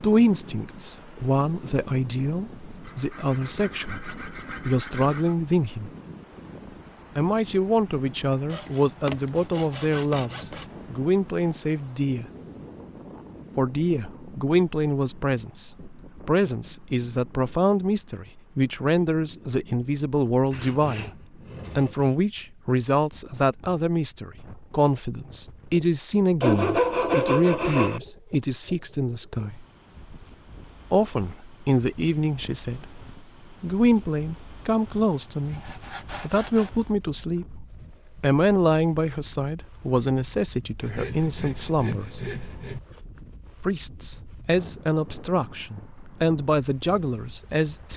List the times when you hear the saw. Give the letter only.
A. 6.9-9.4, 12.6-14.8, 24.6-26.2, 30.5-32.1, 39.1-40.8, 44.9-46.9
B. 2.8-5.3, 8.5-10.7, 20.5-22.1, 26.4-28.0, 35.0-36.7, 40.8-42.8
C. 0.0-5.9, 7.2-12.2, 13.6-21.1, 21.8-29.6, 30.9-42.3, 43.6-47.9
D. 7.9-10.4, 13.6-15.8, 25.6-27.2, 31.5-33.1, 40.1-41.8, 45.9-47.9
B.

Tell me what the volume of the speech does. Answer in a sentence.
The volume of the speech stays about the same.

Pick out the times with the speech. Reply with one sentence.
The speech can be heard from 0.0 to 5.9 s, from 7.2 to 12.2 s, from 13.6 to 21.1 s, from 21.8 to 29.6 s, from 30.9 to 42.3 s and from 43.6 to 47.9 s.